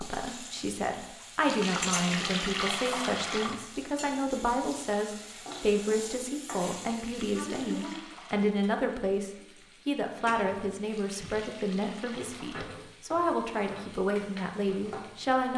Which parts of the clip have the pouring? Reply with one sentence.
The pouring can be heard from 1.4 to 3.5 s, from 6.8 to 8.5 s and from 10.8 to 12.7 s.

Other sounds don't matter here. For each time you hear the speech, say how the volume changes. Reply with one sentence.
You can hear the speech from 0.0 to 15.5 s, at a steady volume.